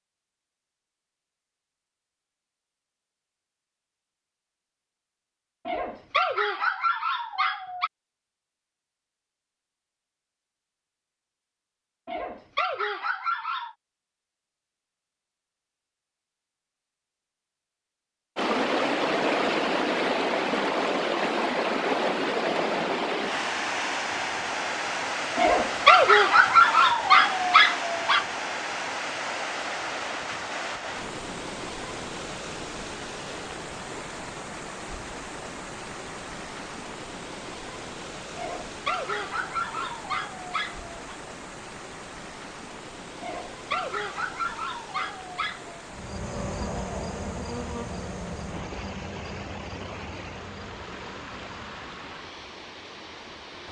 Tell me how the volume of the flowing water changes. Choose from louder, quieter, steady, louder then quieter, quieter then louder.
quieter.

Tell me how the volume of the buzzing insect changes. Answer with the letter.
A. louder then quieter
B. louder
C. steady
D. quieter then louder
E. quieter
E.